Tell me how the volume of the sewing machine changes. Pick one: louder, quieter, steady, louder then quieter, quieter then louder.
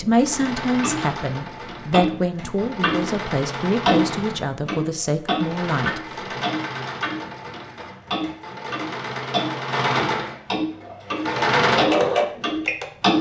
louder.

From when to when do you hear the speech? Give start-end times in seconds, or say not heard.
0.0-6.5.